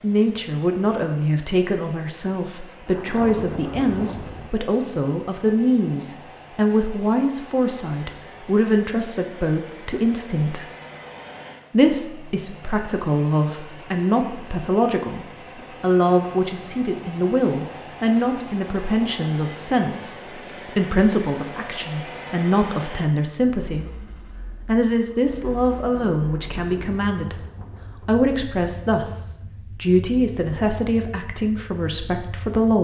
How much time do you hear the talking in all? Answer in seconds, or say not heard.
30 s.